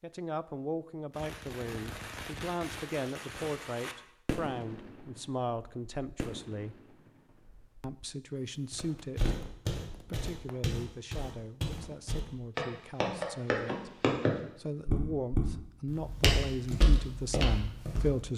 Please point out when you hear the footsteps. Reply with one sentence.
You can hear the footsteps from 8.7 to 18.2 s.